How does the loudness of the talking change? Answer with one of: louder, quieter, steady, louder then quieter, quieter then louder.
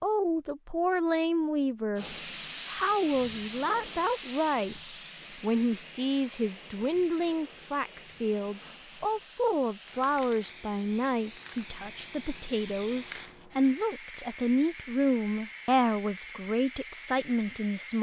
steady.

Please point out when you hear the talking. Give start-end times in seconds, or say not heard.
0.0-4.8, 5.4-17.9.